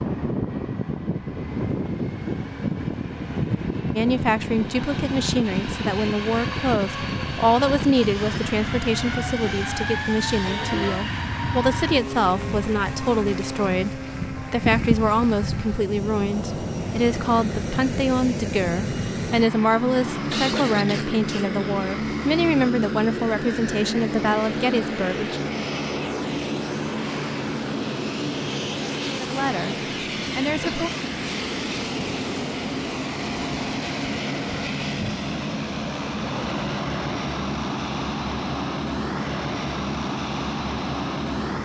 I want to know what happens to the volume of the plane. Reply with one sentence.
The volume of the plane stays about the same.